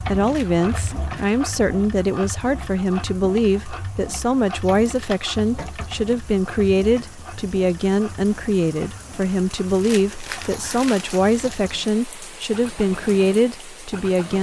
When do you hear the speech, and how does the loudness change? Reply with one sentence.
You can hear the speech from 0.0 to 14.3 s, at a steady volume.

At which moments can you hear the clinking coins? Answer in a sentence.
The clinking coins can't be heard in this clip.